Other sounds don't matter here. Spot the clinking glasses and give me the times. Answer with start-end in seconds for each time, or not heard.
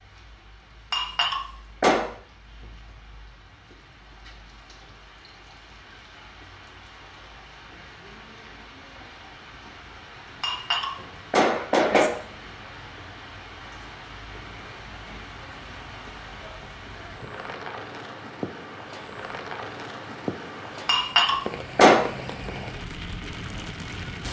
0.9-2.0, 10.4-12.1, 20.9-22.0.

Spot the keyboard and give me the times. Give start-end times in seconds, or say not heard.
not heard.